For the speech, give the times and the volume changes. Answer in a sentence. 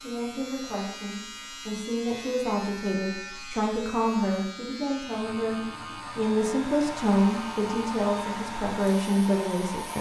You can hear the speech from 0.0 to 9.9 s, getting louder.